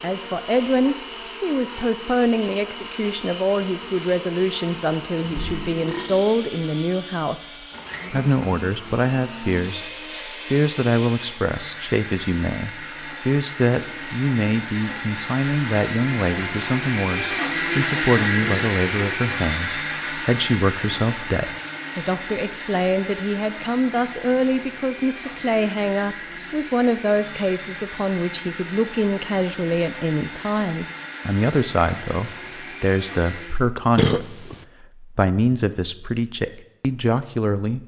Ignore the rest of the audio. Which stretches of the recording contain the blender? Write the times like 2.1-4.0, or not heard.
0.0-33.6.